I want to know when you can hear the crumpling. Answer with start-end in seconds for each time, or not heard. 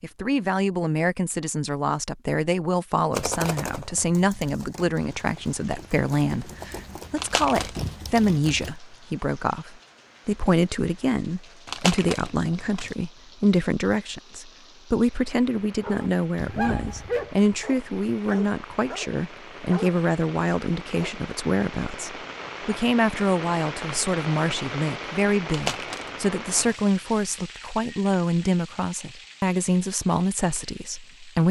7.2-7.8, 11.7-12.9, 25.4-27.2.